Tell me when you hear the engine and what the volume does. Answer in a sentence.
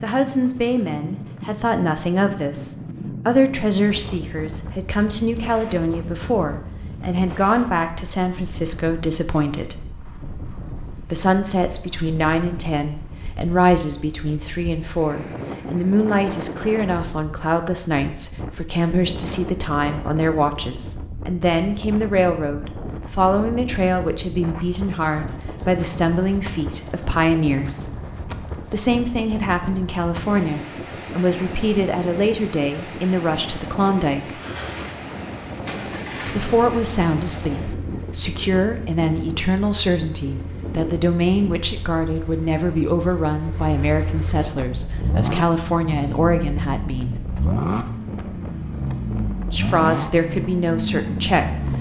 The engine can be heard from 34.3 to 51.7 s, getting quieter then louder.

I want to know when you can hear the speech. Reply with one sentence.
The speech can be heard from 0.0 to 9.8 s, from 11.1 to 27.9 s, from 28.7 to 34.4 s, from 36.2 to 47.2 s and from 49.5 to 51.6 s.